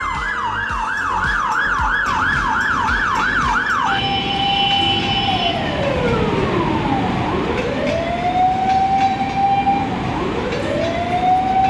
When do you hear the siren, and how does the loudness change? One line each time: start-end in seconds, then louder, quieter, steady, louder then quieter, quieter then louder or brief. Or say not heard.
0.0-11.6 steady.